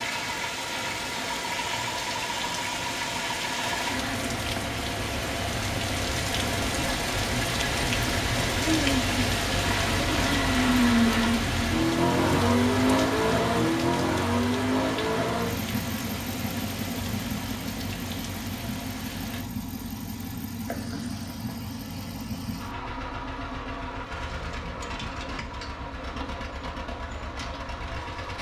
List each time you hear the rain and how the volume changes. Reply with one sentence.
The rain can be heard from 0.0 to 19.4 s, getting louder then quieter.